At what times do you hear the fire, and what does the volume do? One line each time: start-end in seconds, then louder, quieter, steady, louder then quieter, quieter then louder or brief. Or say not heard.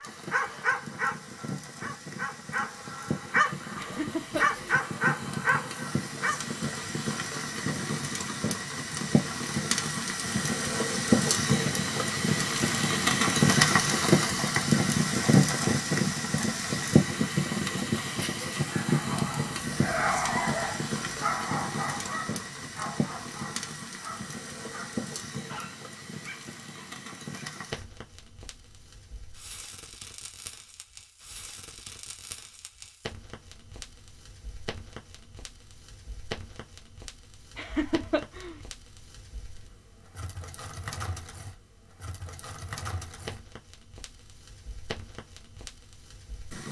0.0-46.6 louder then quieter.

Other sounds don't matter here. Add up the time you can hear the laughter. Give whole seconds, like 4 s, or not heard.
2 s.